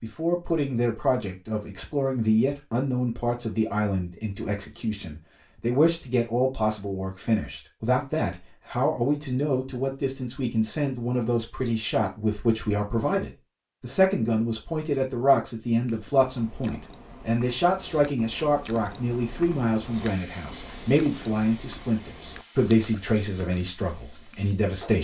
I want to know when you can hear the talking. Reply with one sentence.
The talking can be heard from 0.0 to 25.0 s.